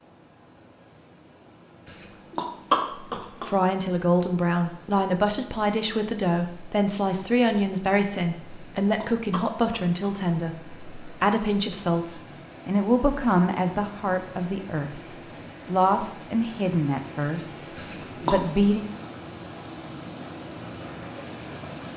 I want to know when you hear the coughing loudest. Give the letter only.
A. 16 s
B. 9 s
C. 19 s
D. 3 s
D.